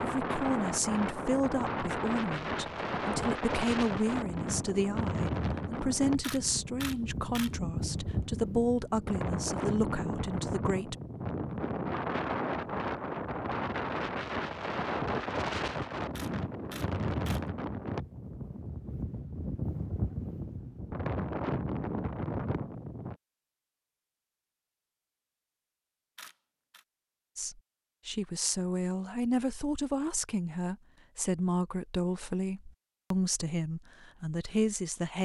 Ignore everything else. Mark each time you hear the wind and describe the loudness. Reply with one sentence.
The wind can be heard from 0.0 to 23.1 s, at a steady volume.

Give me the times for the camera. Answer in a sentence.
You can hear the camera from 6.2 to 7.5 s, from 16.1 to 17.4 s and from 26.1 to 26.9 s.